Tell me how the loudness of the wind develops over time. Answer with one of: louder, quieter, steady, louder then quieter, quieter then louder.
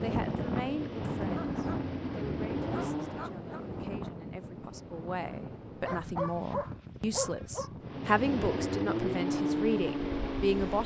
quieter.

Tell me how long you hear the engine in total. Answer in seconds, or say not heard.
6 s.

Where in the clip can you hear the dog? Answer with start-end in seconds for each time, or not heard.
1.2-1.9, 2.7-3.6, 5.8-7.7.